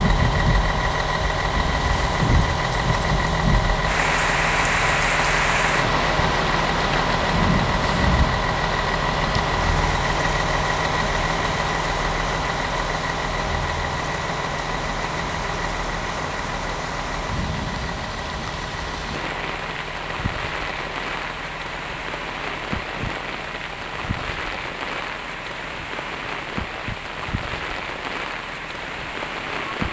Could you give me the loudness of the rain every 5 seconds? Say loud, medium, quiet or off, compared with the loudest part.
loud, loud, medium, medium, medium, medium.